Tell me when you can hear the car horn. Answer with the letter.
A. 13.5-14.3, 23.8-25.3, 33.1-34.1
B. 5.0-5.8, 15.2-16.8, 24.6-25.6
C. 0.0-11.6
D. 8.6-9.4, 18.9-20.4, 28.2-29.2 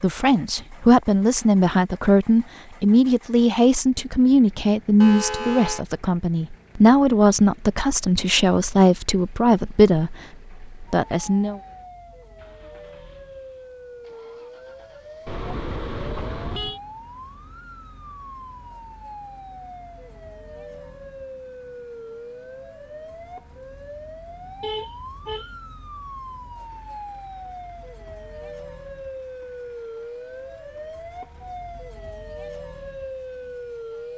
B.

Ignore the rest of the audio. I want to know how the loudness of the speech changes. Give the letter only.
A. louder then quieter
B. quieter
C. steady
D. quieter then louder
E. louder
C.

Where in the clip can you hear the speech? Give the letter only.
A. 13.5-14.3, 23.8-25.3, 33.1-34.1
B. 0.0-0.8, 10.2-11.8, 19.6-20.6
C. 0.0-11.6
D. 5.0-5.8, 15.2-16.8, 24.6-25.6
C.